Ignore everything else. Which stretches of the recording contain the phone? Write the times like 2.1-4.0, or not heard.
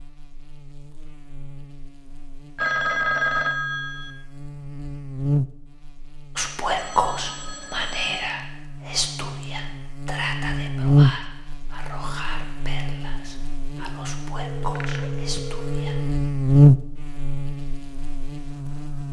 2.5-4.1, 6.8-8.3, 13.8-16.1.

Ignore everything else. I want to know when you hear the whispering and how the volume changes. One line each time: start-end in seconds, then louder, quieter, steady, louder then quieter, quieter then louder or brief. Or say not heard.
6.3-16.0 quieter.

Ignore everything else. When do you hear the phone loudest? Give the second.
3 s.